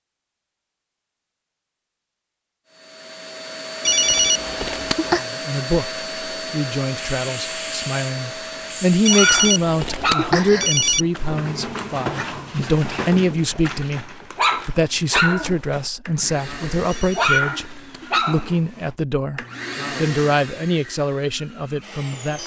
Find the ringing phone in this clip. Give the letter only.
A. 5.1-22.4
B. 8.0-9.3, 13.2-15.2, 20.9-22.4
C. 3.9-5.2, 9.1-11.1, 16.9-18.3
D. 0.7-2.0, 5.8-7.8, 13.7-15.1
C.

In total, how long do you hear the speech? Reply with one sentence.
The speech can be heard for 17 seconds in total.